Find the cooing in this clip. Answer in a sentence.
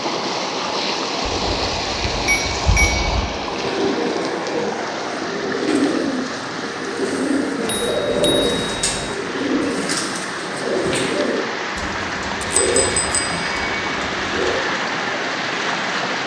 You can hear the cooing from 3.5 to 14.6 s.